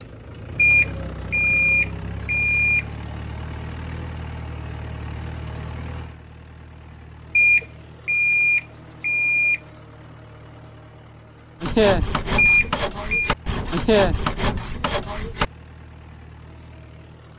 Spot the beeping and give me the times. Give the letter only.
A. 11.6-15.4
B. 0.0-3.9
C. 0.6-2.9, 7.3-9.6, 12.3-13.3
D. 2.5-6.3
C.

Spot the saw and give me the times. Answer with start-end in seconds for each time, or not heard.
11.6-15.4.